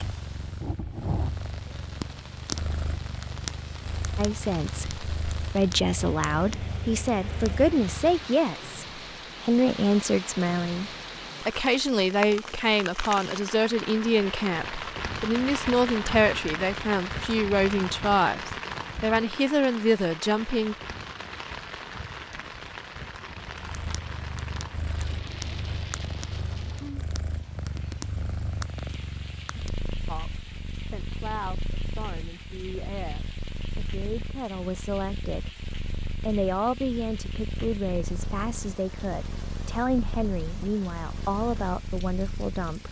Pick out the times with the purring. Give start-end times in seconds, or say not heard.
0.0-8.3, 23.6-42.8.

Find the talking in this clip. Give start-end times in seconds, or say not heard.
4.2-20.8, 30.1-35.5, 36.2-42.8.